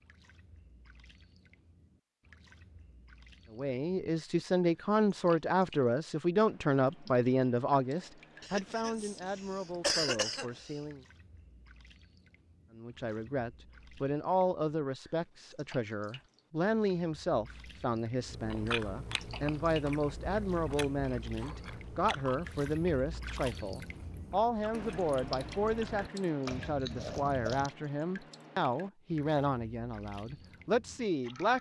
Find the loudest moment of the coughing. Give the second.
10 s.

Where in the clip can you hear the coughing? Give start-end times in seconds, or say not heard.
8.4-10.8.